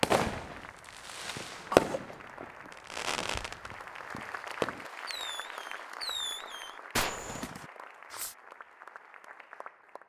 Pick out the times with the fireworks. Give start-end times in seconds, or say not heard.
0.0-8.3.